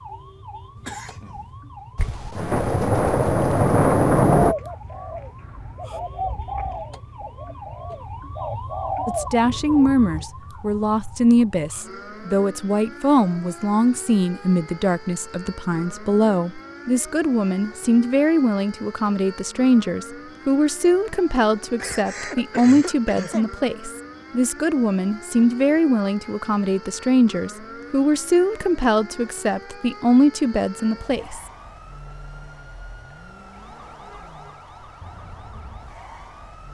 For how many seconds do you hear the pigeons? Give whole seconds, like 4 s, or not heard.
6 s.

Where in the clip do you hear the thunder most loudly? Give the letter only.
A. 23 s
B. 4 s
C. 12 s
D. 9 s
B.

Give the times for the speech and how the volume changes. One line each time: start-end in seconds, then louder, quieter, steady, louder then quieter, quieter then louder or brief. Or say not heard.
9.1-31.4 steady.